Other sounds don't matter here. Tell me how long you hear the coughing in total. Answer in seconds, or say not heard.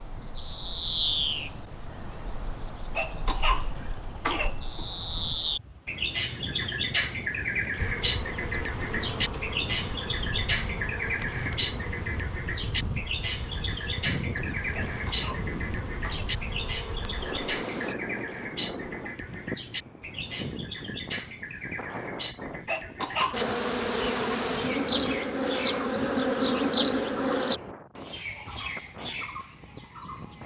4 s.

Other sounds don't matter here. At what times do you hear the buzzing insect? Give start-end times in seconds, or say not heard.
7.8-17.9, 23.3-27.6.